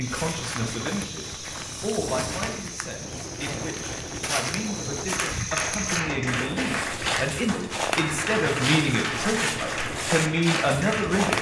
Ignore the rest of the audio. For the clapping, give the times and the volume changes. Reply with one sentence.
The clapping can be heard from 5.1 to 11.3 s, at a steady volume.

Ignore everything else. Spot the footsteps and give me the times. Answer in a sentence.
You can hear the footsteps from 0.0 to 11.3 s.